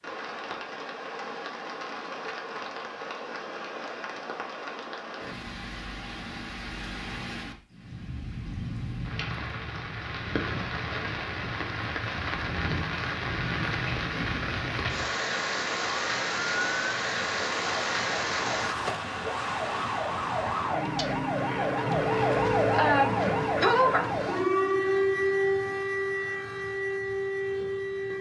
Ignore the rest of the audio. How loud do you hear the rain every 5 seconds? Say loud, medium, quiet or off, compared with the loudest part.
medium, medium, loud, loud, off, off.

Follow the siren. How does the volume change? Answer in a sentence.
The loudness of the siren goes up, then down.